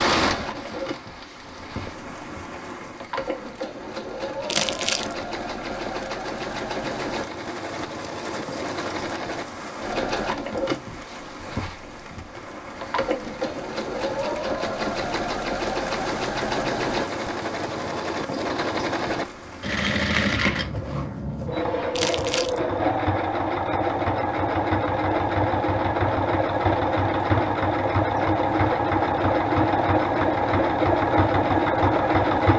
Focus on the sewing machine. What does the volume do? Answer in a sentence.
The volume of the sewing machine goes up.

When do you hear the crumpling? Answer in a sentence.
The crumpling can be heard from 4.5 to 5.2 s and from 21.9 to 22.6 s.